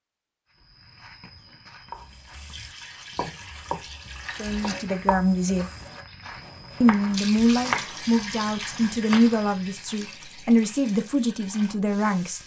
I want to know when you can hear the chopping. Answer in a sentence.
You can hear the chopping from 1.9 to 9.3 s.